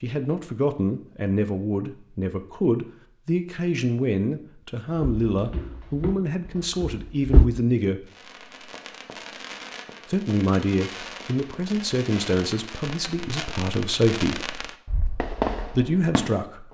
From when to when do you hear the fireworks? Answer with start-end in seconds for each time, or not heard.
8.1-16.6.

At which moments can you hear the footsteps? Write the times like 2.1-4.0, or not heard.
5.0-7.5.